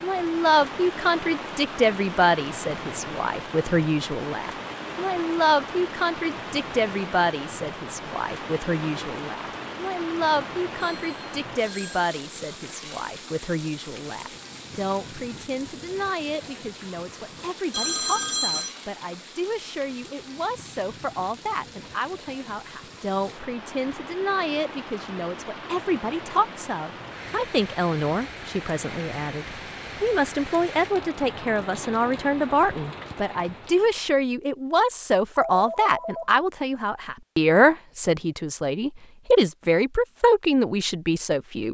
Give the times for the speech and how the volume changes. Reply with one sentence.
The speech can be heard from 0.0 to 41.6 s, getting quieter then louder.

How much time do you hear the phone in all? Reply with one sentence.
The phone can be heard for 3 seconds in total.